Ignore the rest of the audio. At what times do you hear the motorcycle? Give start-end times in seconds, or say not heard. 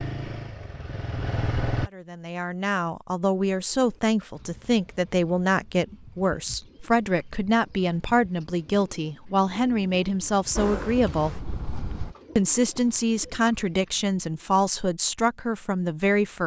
0.0-1.9, 10.6-12.2.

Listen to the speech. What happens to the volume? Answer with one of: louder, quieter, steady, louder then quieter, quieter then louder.
steady.